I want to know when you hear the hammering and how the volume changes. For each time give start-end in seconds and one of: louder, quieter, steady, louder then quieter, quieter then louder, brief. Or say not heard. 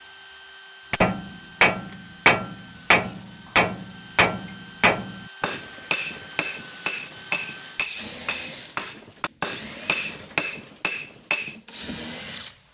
0.9-11.6 quieter.